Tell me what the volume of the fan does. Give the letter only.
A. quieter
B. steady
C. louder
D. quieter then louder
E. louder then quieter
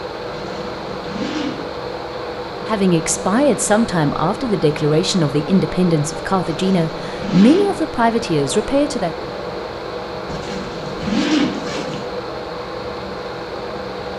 B.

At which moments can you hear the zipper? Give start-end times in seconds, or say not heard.
0.3-1.6, 6.5-7.7, 10.2-12.1.